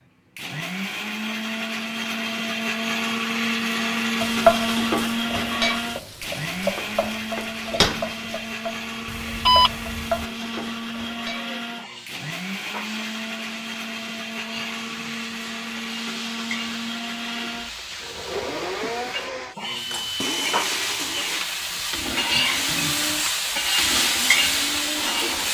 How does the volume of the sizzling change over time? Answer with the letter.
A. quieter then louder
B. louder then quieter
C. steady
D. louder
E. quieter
A.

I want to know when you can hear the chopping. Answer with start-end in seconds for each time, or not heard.
not heard.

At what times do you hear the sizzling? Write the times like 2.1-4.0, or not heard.
4.2-25.5.